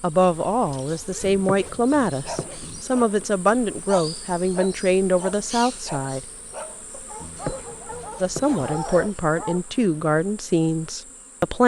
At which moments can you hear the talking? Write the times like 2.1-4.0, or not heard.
0.0-6.2, 8.2-11.6.